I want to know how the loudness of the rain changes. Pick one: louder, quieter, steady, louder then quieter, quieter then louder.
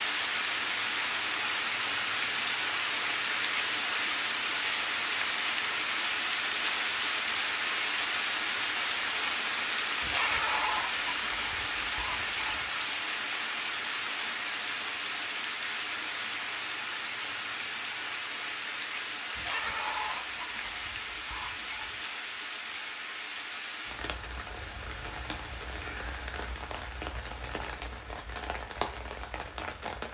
quieter.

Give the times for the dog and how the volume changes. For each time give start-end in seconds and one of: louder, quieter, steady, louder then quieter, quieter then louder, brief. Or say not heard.
not heard.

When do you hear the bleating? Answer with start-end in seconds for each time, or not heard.
10.0-12.7, 19.4-21.9.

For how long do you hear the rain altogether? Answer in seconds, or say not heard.
30 s.